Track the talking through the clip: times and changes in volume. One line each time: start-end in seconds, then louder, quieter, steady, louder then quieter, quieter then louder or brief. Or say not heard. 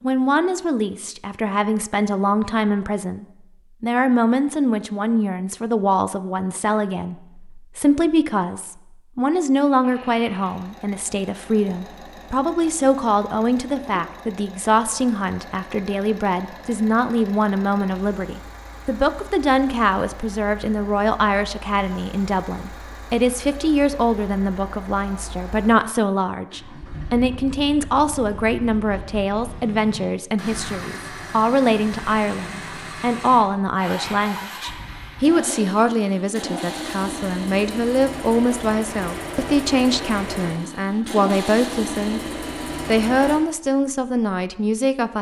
0.0-45.1 steady.